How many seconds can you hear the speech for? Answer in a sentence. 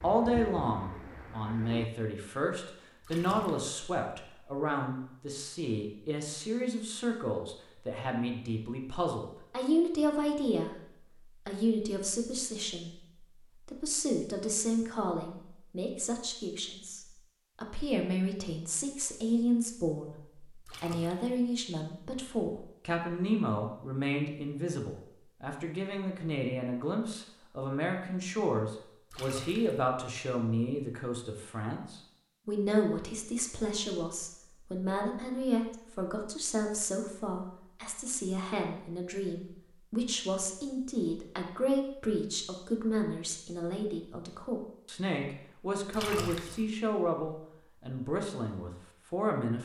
The speech can be heard for 48 seconds in total.